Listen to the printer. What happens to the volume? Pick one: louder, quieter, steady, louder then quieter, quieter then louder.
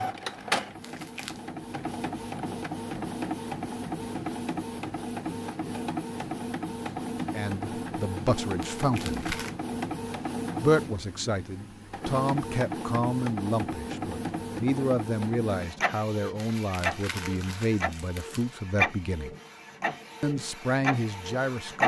steady.